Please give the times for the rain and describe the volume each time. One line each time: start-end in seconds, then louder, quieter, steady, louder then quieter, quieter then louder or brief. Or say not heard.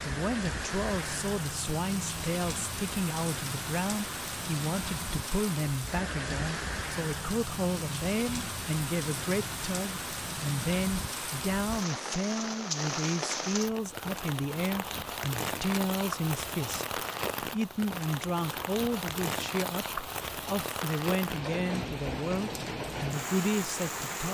0.0-24.2 steady.